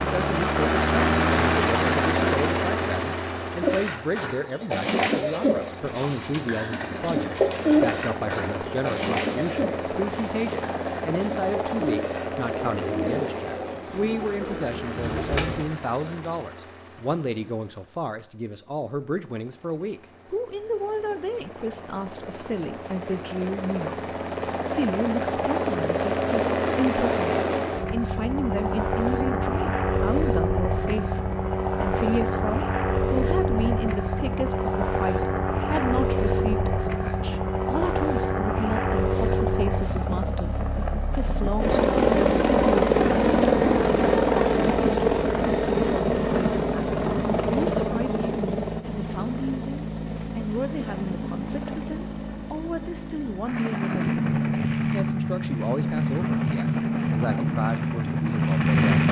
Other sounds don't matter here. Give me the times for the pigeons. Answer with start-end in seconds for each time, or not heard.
3.6-15.7.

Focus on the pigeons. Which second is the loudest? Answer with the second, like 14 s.
8 s.